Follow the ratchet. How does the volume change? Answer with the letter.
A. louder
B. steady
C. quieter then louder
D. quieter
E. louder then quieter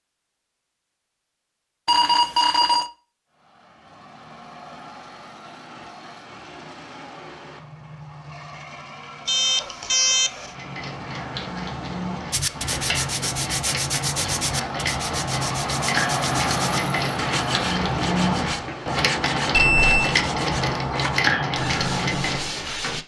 A.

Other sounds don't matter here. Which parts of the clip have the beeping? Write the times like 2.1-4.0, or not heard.
1.9-2.9, 9.2-10.5, 19.6-20.1.